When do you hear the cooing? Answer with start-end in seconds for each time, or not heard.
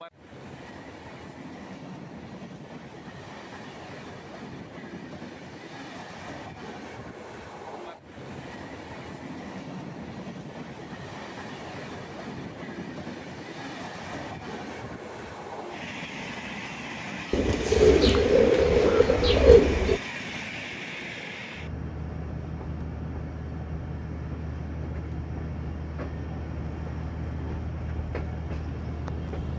17.3-20.0.